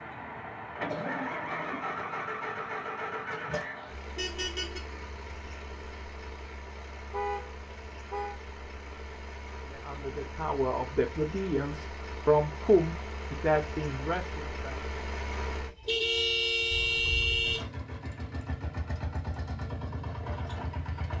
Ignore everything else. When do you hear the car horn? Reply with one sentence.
The car horn can be heard from 4.2 to 4.8 s, from 7.1 to 8.3 s and from 15.8 to 17.6 s.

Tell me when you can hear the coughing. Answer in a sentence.
The coughing can be heard from 0.8 to 1.9 s.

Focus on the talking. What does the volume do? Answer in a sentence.
The volume of the talking goes up, then down.